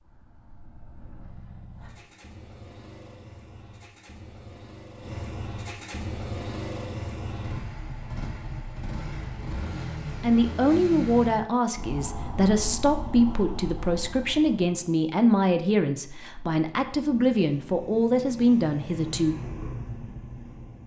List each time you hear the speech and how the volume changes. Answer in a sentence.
You can hear the speech from 10.2 to 19.4 s, at a steady volume.